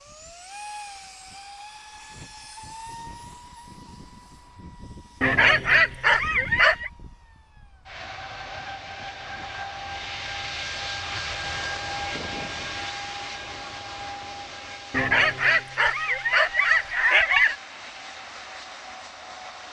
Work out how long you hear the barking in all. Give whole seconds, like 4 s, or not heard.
4 s.